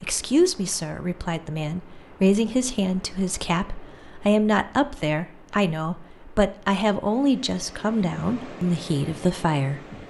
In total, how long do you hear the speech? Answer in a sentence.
The speech can be heard for 10 seconds in total.